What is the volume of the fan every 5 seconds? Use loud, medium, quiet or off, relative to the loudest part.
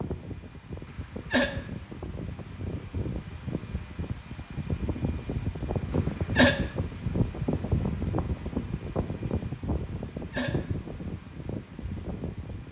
medium, loud, medium.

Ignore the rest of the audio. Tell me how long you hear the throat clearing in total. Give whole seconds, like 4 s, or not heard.
2 s.